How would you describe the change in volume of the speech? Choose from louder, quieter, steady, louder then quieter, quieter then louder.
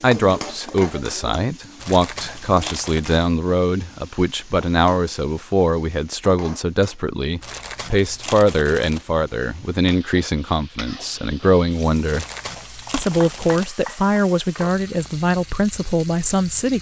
steady.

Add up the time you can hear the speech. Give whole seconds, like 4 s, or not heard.
16 s.